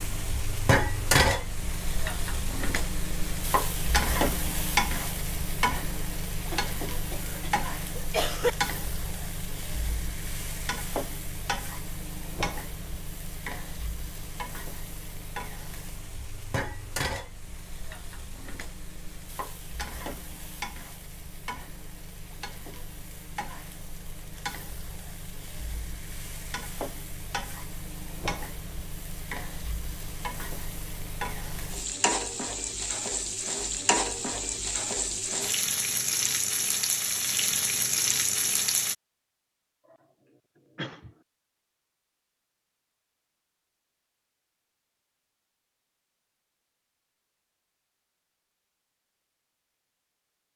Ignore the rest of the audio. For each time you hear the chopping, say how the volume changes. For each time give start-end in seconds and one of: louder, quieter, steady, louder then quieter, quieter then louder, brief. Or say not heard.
not heard.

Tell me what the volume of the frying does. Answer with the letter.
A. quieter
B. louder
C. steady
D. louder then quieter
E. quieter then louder
E.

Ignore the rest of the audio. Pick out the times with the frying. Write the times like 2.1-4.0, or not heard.
0.0-39.0.